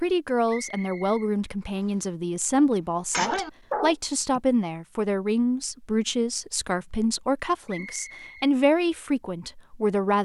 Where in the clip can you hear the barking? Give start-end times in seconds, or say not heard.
2.5-4.4.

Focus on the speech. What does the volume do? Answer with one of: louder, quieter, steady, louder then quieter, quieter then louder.
steady.